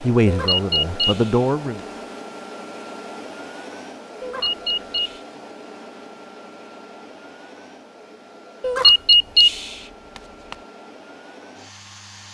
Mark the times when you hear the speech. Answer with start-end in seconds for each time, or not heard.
0.0-1.8.